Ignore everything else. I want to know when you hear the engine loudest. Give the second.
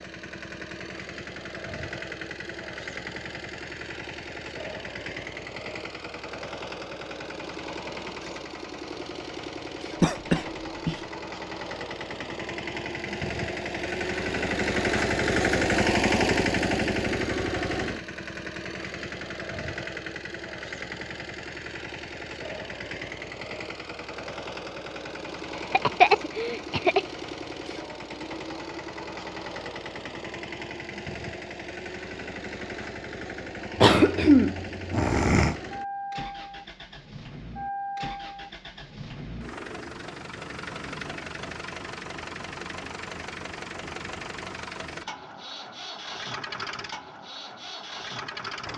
16 s.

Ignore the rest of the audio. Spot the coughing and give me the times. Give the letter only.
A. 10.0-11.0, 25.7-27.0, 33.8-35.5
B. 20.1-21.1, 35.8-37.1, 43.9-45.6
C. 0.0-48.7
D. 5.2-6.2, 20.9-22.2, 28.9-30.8
A.